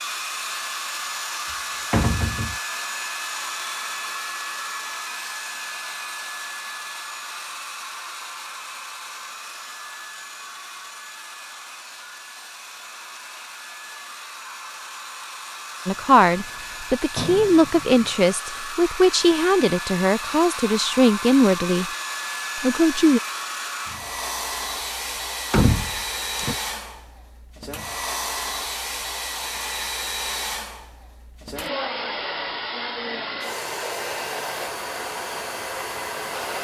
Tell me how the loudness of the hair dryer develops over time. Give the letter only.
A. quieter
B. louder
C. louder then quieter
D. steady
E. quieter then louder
E.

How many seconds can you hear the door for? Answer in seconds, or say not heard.
4 s.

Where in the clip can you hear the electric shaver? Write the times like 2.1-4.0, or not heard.
not heard.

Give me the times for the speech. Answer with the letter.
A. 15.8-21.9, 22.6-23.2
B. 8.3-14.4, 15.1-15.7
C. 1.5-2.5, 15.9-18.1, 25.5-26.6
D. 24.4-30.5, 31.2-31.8
A.